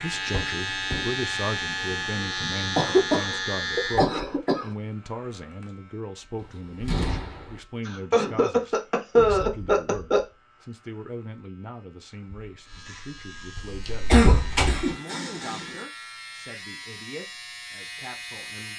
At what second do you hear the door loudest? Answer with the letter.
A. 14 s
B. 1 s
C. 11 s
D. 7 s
A.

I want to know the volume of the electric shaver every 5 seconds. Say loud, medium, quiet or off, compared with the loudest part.
loud, quiet, quiet, medium.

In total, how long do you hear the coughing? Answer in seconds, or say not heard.
6 s.